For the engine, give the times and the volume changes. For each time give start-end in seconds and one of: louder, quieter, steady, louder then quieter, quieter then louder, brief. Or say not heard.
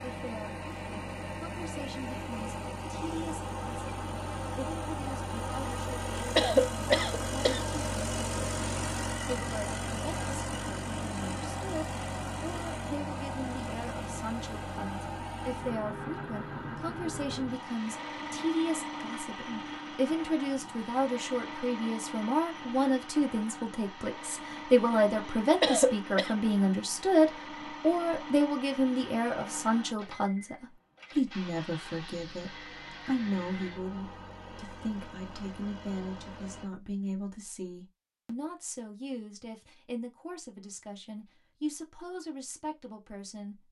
0.0-36.7 quieter.